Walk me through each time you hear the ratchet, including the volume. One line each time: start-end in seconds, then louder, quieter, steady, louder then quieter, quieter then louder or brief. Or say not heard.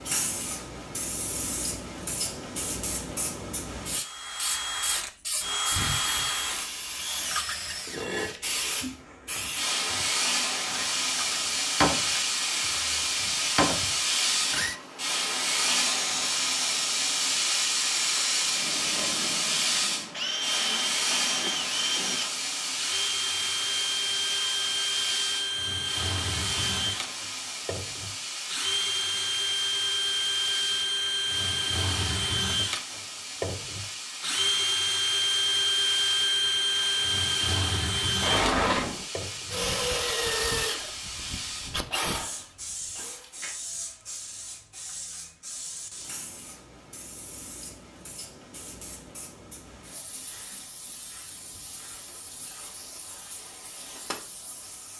not heard.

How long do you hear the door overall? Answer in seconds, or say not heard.
3 s.